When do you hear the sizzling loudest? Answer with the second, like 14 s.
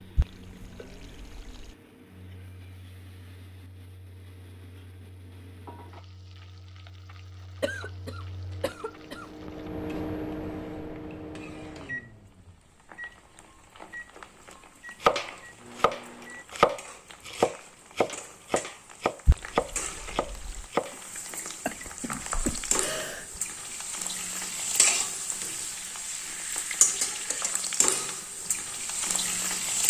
27 s.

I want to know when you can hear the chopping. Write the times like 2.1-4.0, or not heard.
15.0-21.0.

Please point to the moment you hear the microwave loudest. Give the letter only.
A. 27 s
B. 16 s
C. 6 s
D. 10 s
D.